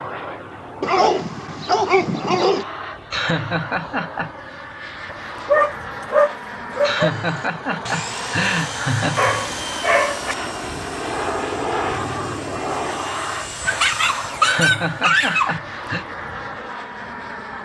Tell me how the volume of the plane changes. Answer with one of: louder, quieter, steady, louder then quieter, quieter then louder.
louder then quieter.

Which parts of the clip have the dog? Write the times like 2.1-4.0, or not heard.
0.8-2.6, 5.1-7.1, 9.2-10.3, 13.7-15.6.